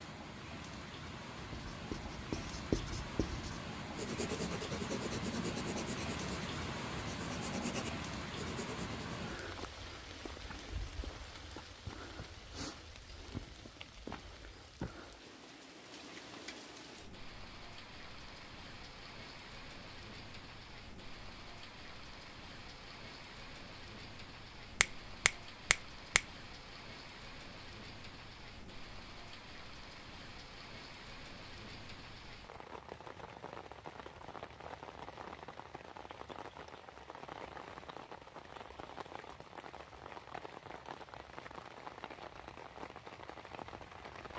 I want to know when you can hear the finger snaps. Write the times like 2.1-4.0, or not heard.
24.8-26.2.